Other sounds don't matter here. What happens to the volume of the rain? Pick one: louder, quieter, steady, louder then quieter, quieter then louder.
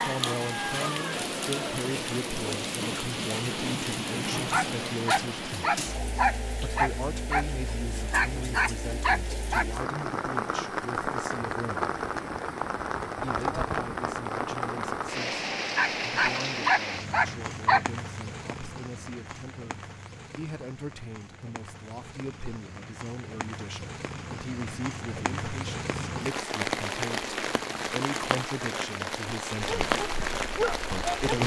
quieter then louder.